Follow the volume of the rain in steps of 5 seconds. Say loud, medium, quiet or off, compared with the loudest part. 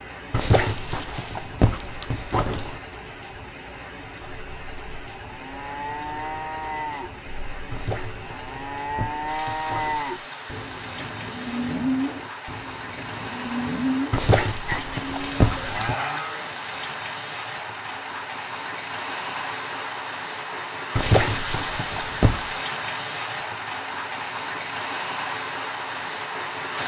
medium, medium, medium, loud, loud, loud.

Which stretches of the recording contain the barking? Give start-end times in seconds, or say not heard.
0.3-2.8, 7.7-10.1, 14.1-15.9, 20.9-22.5.